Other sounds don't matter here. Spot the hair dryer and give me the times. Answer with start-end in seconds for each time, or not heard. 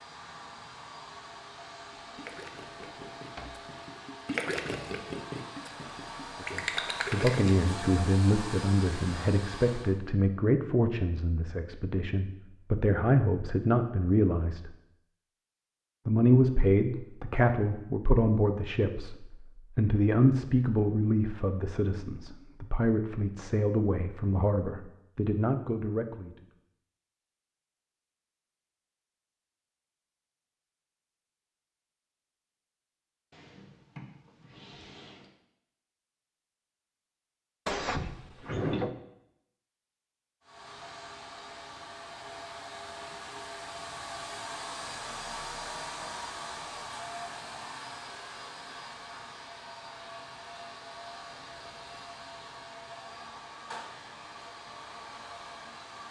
0.0-10.0, 40.4-56.0.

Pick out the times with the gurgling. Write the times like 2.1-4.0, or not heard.
1.7-7.7.